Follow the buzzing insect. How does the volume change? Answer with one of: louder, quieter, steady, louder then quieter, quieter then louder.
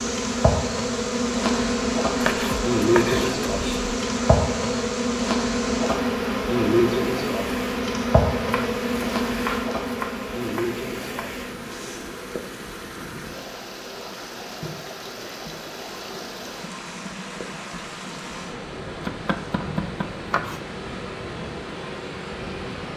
quieter.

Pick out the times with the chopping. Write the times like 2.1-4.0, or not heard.
2.1-4.0, 8.5-11.3, 18.9-20.6.